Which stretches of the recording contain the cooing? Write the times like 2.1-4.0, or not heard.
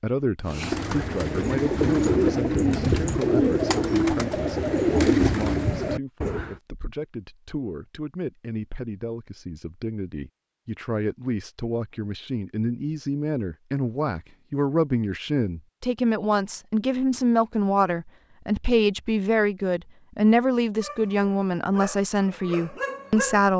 0.5-6.6.